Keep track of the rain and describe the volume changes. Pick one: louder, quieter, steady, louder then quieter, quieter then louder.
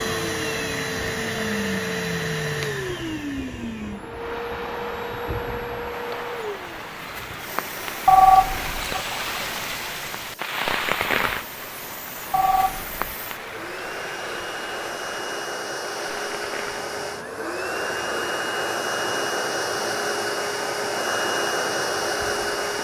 louder then quieter.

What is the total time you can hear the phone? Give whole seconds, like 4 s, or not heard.
2 s.